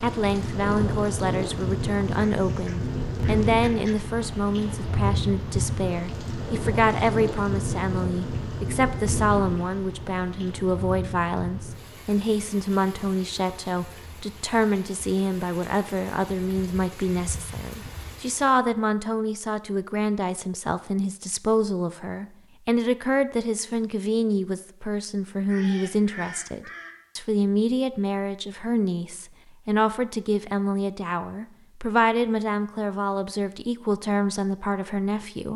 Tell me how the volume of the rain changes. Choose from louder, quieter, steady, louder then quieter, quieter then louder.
quieter.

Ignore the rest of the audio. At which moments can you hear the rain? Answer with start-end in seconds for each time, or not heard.
0.0-18.5.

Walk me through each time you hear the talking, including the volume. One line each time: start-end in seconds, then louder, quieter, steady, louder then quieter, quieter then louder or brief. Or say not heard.
0.0-35.5 steady.